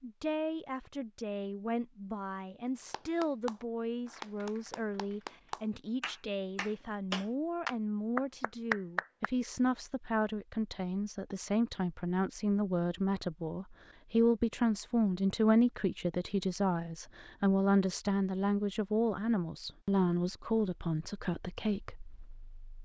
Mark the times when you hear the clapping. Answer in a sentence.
You can hear the clapping from 2.8 to 9.3 s.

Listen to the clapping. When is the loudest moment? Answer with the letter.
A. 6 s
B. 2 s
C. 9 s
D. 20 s
C.